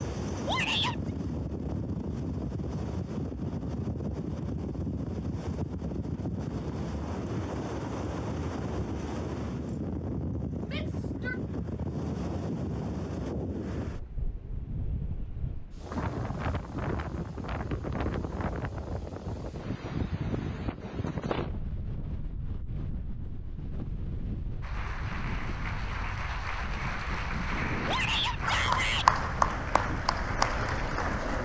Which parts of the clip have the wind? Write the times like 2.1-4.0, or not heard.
0.0-31.4.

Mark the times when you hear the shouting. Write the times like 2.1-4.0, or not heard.
0.5-0.9, 10.7-11.4, 27.9-29.1.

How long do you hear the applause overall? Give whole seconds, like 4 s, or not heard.
7 s.